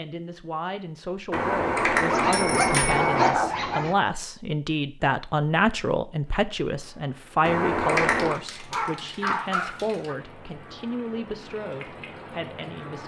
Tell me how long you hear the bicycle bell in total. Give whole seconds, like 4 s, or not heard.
3 s.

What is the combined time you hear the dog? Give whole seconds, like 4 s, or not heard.
4 s.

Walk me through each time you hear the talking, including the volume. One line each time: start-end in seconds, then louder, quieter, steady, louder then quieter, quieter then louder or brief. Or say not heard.
0.0-13.0 louder then quieter.